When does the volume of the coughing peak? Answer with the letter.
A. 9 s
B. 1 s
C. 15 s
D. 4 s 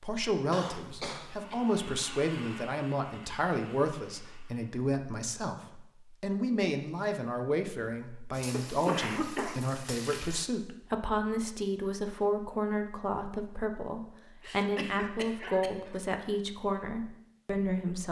A.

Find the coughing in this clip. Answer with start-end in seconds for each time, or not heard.
0.5-1.6, 8.5-9.8, 14.4-16.1.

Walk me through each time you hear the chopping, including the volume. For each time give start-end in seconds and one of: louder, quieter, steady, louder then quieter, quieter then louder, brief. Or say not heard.
not heard.